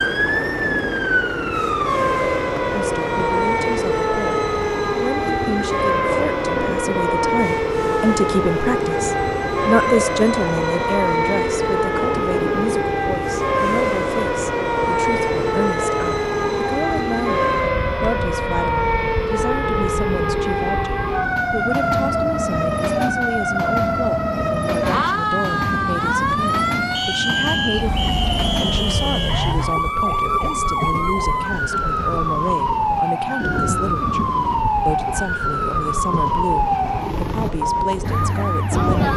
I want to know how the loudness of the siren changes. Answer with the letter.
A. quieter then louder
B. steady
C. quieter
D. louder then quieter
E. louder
B.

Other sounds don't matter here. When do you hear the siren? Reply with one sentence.
The siren can be heard from 0.0 to 39.1 s.